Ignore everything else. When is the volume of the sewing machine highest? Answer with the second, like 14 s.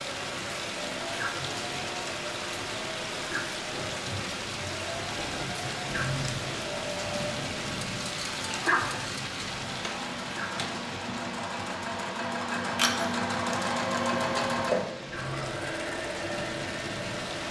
14 s.